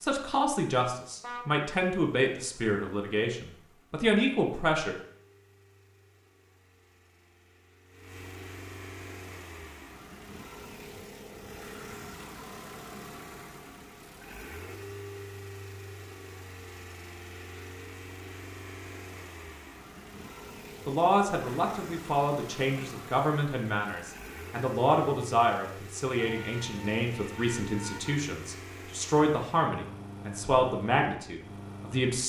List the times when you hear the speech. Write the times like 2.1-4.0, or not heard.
0.0-5.0, 20.9-32.2.